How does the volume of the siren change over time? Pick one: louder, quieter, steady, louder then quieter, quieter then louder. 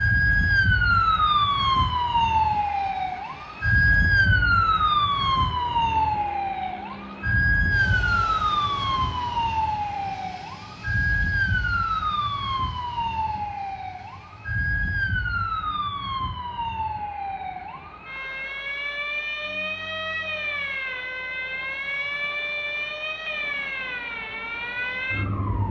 quieter.